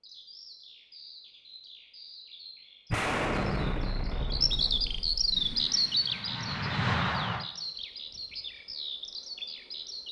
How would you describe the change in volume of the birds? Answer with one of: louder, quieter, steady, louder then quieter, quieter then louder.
louder then quieter.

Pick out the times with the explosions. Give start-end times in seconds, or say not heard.
2.9-5.5.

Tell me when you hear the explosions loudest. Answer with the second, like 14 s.
3 s.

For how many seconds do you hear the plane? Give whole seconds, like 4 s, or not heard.
2 s.